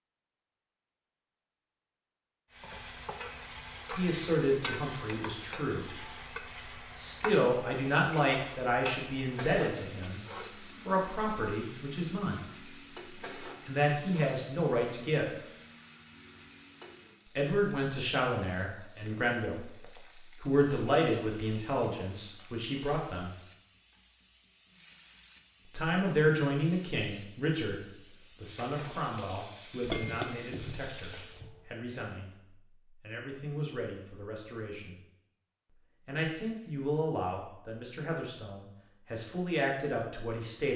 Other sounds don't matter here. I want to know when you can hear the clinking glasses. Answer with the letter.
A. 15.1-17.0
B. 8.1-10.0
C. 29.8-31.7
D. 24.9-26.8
C.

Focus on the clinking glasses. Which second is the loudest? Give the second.
30 s.